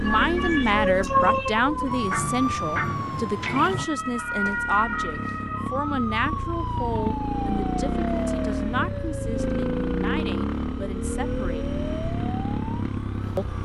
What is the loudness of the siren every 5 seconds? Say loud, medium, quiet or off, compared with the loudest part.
loud, medium, medium.